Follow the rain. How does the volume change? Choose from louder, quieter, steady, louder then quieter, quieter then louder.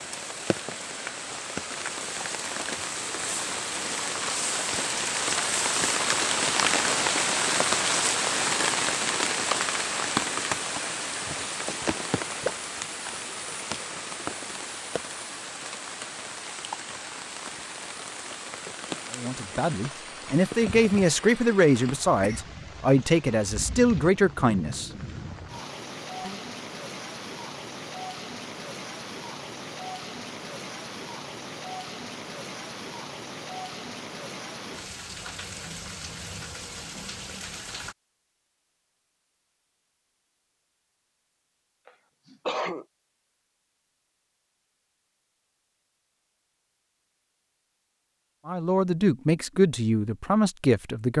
quieter.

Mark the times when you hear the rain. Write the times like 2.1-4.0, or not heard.
0.0-38.0.